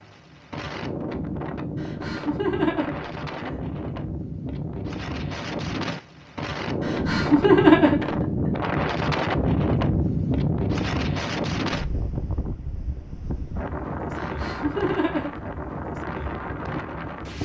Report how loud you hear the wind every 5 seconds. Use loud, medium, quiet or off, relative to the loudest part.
medium, loud, loud, medium.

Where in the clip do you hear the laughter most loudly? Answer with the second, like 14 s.
8 s.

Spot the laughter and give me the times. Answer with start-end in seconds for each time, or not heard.
1.8-3.5, 6.8-8.1, 14.2-15.4.